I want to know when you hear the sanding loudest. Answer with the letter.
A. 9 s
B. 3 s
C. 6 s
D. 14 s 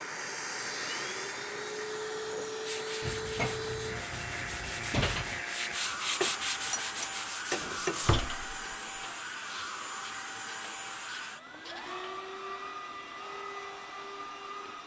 C.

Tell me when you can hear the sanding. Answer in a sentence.
You can hear the sanding from 2.6 to 8.2 s.